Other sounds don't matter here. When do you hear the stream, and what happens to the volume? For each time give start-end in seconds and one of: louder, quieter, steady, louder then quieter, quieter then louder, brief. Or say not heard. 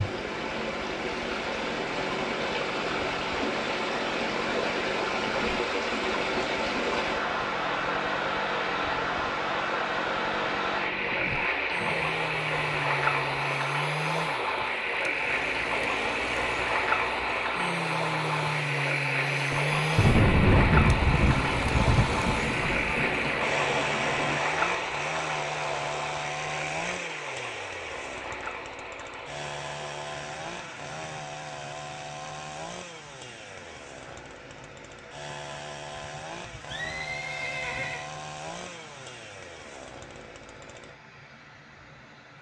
0.0-42.3 quieter.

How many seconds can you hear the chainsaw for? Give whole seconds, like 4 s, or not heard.
41 s.